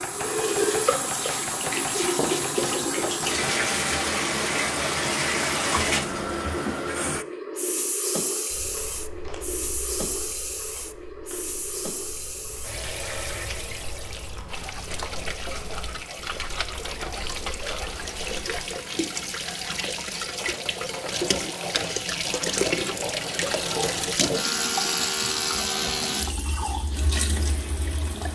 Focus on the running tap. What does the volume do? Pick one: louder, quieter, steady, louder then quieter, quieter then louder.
quieter then louder.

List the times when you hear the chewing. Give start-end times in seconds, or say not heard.
8.5-18.6.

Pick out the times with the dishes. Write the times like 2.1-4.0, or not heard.
not heard.